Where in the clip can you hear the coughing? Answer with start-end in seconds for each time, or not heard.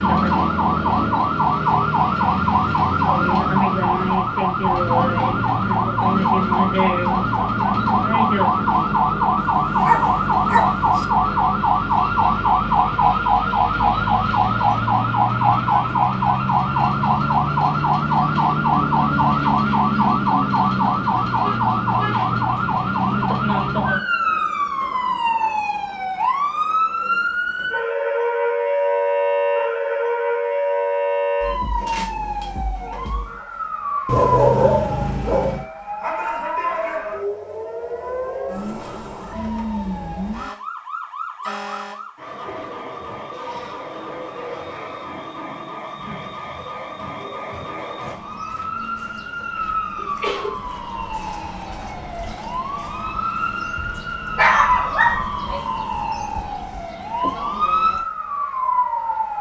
50.0-50.6.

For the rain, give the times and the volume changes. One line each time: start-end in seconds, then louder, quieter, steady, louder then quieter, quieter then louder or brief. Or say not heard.
not heard.